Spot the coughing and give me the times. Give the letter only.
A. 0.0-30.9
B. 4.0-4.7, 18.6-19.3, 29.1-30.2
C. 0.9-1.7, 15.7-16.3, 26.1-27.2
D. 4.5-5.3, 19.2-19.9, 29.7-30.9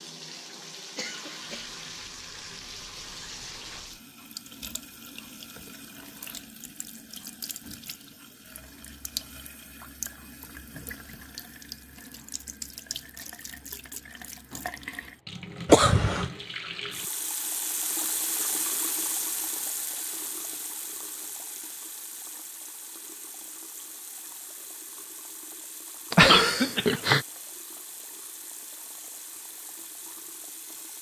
C.